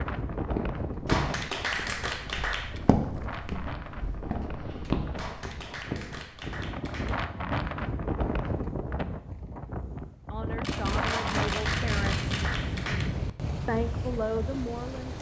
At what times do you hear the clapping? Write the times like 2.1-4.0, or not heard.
1.1-2.8, 5.2-7.2, 11.1-13.1.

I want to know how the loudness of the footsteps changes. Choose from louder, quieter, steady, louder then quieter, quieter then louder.
quieter.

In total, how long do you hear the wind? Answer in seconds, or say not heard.
15 s.